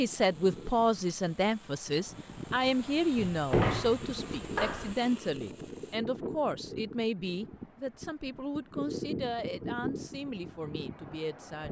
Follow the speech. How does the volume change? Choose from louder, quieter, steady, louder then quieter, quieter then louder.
quieter.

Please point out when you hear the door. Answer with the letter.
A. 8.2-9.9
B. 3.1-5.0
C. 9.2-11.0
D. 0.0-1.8
B.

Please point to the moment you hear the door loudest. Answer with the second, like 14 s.
4 s.